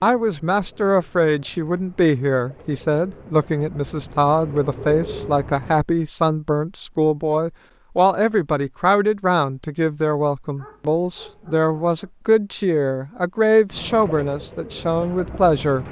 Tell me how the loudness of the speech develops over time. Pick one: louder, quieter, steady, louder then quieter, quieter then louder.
steady.